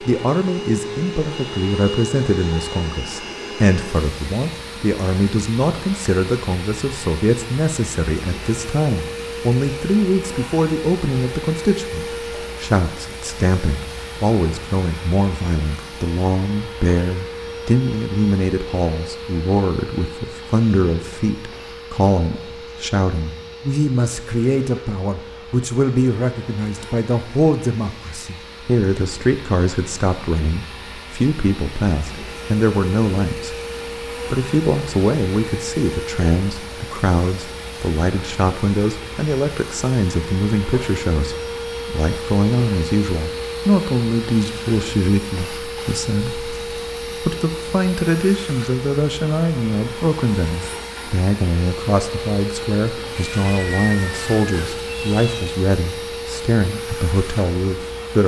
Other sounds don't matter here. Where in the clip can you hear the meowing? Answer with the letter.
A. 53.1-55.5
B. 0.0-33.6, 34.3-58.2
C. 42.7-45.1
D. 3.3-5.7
A.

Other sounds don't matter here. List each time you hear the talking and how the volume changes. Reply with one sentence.
The talking can be heard from 0.0 to 33.6 s, at a steady volume; and from 34.3 to 58.2 s, at a steady volume.